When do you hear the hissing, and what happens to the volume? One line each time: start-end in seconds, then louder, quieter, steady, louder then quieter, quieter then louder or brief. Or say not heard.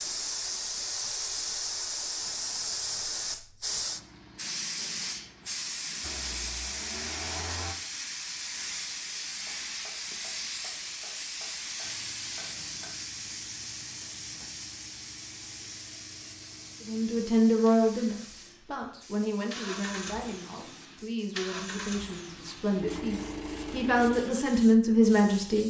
0.0-25.6 quieter.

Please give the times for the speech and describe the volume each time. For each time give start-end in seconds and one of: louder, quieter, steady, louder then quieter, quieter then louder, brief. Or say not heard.
16.9-25.6 quieter then louder.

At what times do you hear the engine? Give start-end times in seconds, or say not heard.
6.0-7.8, 11.8-24.2.